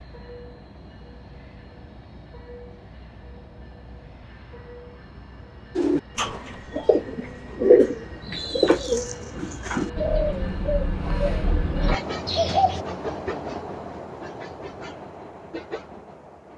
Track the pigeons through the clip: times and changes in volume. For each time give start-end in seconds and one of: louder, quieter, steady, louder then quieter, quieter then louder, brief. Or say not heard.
5.8-12.8 louder then quieter.